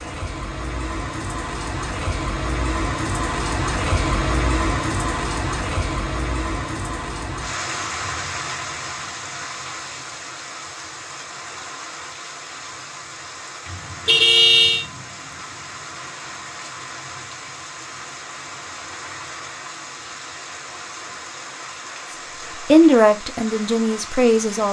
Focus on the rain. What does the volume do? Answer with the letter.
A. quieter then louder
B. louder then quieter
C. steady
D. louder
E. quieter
E.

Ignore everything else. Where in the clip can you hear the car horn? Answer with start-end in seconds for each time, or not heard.
14.1-14.8.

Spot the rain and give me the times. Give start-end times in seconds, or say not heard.
0.0-24.6.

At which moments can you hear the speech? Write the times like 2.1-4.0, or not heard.
22.6-24.6.